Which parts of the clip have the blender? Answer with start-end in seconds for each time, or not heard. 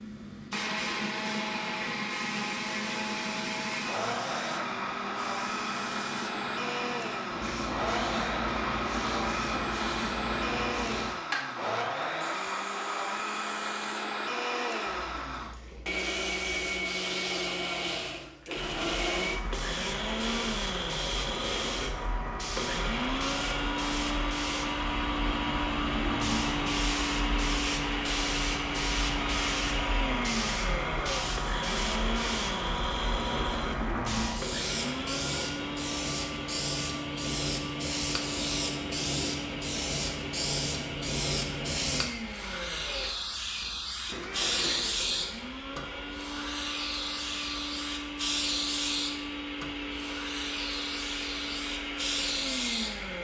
0.0-53.2.